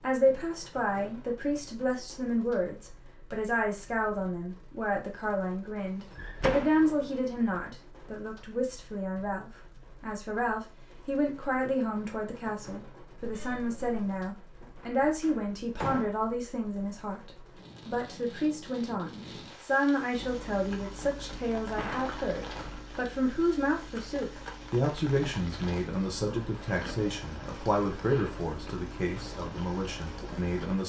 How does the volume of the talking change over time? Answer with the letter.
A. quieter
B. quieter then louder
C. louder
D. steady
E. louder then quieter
D.